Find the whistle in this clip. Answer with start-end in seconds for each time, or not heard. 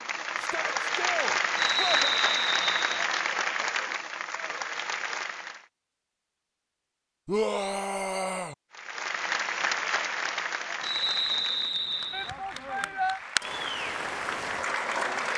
1.6-3.0, 10.8-12.3.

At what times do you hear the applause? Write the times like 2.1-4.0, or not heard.
0.0-5.7, 8.7-15.3.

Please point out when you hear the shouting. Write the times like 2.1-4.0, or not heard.
0.3-2.0, 7.2-8.6, 12.1-13.2.